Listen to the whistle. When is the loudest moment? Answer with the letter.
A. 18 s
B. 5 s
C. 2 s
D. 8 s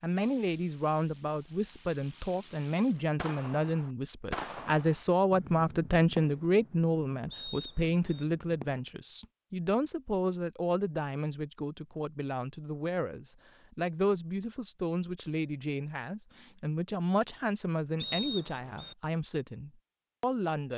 A.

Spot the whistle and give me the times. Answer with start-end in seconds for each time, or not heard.
7.3-8.2, 18.0-18.9.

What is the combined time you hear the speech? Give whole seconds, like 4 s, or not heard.
21 s.